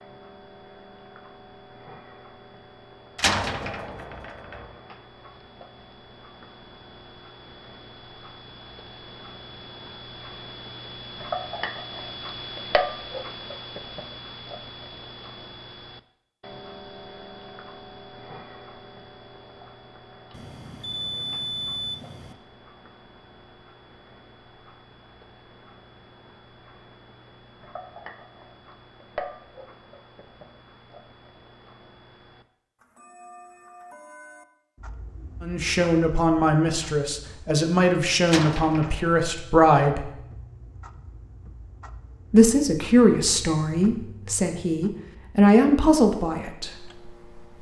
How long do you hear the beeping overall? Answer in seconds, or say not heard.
2 s.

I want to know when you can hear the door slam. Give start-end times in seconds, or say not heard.
3.1-4.7, 38.2-39.1.